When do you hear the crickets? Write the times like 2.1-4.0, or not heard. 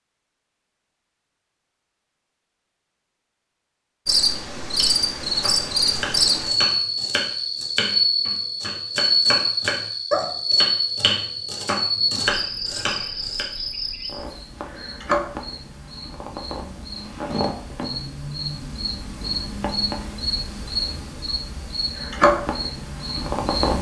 4.0-23.7.